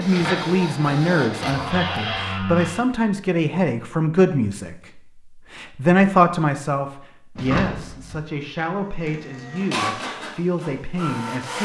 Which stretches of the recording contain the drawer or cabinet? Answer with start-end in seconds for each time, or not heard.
1.4-2.9, 7.3-8.2.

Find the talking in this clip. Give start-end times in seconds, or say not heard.
0.0-11.6.